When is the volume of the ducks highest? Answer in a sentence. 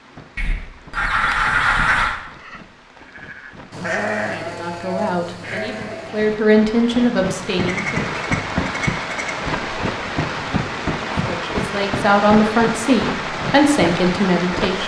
The volume of the ducks peaks at 2 seconds.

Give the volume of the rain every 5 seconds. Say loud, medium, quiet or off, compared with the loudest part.
quiet, loud, loud.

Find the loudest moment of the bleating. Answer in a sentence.
The volume of the bleating peaks at 4 seconds.